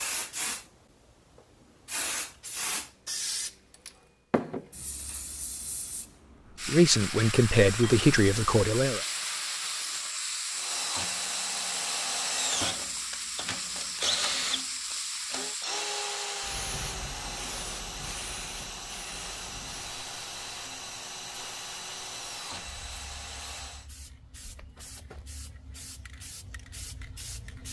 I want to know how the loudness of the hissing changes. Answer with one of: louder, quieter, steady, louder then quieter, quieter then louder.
quieter.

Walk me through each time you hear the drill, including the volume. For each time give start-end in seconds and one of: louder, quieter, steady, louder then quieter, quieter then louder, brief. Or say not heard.
10.5-23.9 quieter.